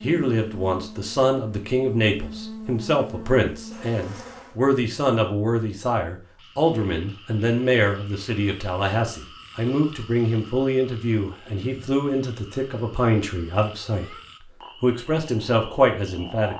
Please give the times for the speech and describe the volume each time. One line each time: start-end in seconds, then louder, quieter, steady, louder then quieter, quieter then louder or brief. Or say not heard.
0.0-14.2 steady
14.8-16.5 brief.